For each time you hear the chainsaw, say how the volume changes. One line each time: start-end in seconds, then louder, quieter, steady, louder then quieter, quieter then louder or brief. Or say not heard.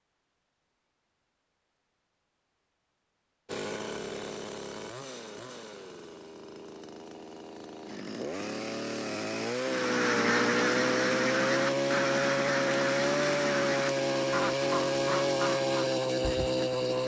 3.5-17.0 louder.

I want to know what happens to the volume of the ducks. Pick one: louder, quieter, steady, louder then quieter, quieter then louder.
quieter.